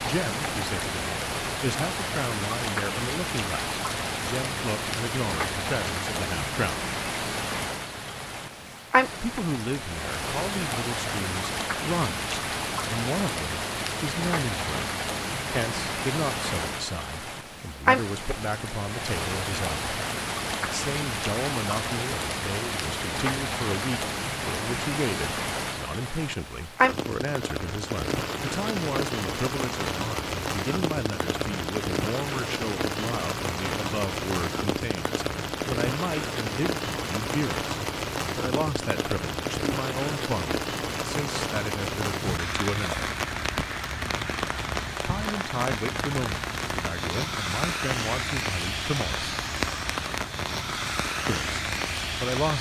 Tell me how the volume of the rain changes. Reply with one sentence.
The volume of the rain stays about the same.